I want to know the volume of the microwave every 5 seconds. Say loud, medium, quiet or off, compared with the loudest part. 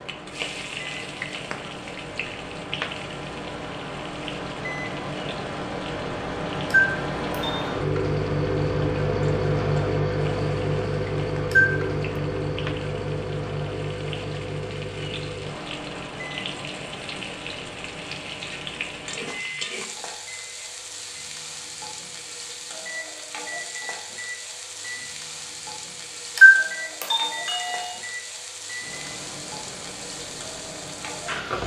medium, loud, loud, medium, quiet, quiet, quiet.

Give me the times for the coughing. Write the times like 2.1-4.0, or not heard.
not heard.